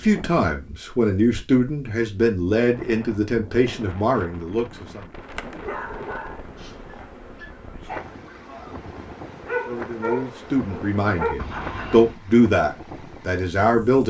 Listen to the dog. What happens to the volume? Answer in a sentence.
The volume of the dog goes down, then up.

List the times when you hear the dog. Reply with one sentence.
You can hear the dog from 5.6 to 12.2 s.